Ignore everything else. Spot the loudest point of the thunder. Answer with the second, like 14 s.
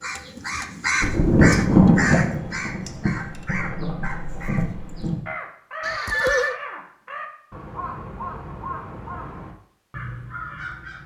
2 s.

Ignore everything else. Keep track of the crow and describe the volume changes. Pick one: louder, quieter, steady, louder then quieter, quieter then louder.
quieter.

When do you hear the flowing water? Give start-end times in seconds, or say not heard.
not heard.